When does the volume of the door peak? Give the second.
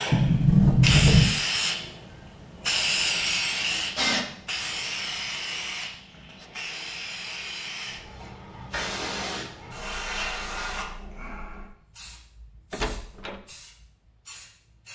1 s.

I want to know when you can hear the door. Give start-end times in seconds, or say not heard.
0.1-1.3, 12.7-13.4.